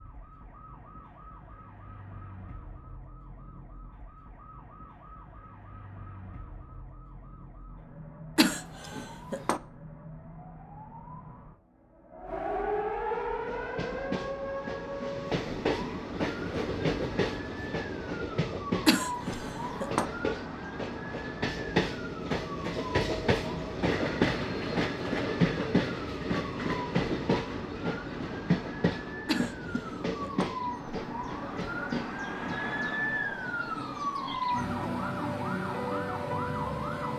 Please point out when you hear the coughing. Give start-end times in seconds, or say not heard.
8.3-9.6, 18.9-20.1, 29.2-30.5.